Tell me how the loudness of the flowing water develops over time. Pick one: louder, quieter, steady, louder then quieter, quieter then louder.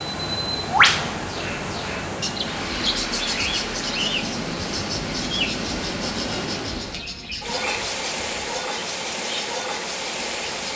steady.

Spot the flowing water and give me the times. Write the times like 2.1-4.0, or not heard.
0.0-10.7.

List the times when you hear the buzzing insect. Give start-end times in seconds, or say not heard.
not heard.